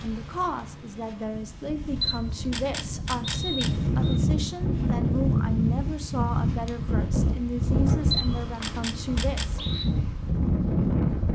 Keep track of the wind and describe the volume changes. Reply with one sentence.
The volume of the wind goes up.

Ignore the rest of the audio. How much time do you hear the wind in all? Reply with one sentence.
The wind can be heard for 11 seconds in total.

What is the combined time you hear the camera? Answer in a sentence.
The camera can be heard for 3 seconds in total.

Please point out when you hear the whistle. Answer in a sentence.
You can hear the whistle from 3.2 to 4.2 s and from 7.8 to 9.8 s.